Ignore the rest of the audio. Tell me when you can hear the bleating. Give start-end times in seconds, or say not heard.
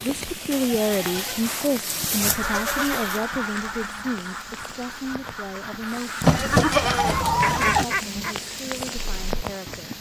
0.5-3.2, 6.2-7.8.